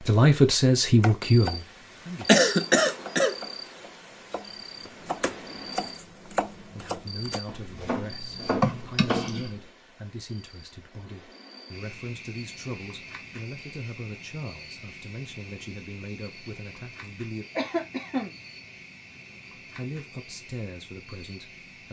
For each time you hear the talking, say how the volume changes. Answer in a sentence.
The talking can be heard briefly from 0.0 to 2.4 s; from 6.6 to 17.4 s, at a steady volume; and briefly from 19.6 to 21.8 s.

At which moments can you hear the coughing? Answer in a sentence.
You can hear the coughing from 2.2 to 3.4 s, from 8.6 to 9.4 s and from 17.6 to 18.4 s.